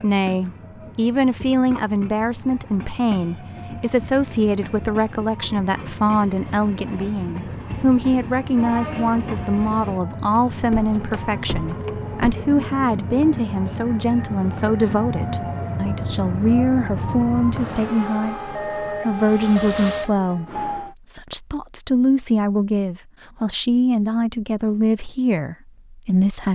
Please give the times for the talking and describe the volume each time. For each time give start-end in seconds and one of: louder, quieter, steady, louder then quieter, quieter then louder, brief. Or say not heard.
0.0-26.5 steady.